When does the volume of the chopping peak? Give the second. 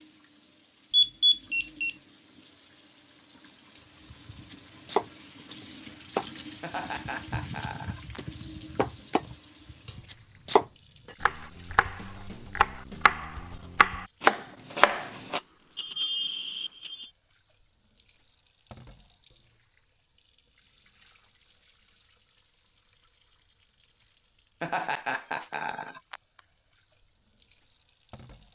14 s.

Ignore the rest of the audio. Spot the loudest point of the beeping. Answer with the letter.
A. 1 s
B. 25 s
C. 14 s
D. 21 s
A.